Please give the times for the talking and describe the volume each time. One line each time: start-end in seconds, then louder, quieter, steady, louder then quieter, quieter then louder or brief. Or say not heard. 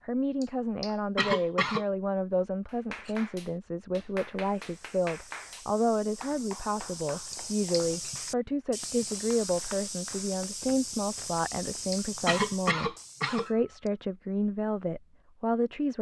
0.1-15.9 steady.